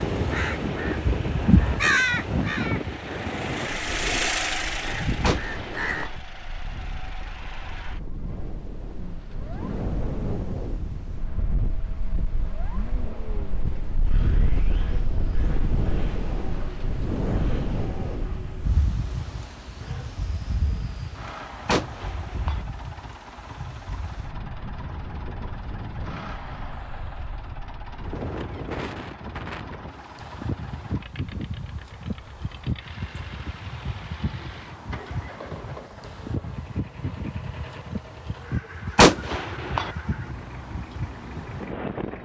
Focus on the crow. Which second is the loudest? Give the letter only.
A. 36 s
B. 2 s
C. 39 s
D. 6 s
B.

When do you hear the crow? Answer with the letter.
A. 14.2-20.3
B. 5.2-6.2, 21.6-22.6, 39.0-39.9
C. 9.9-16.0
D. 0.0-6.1
D.